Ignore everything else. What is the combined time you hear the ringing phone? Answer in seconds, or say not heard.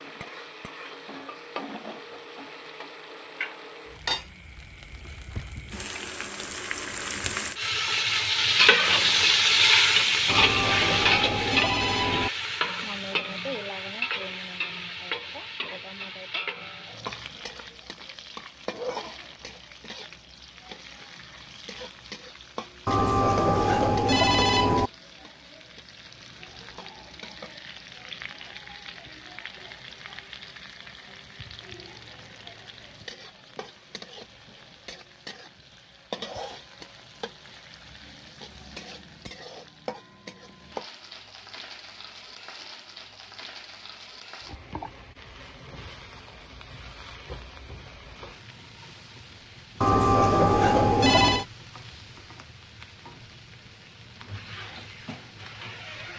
6 s.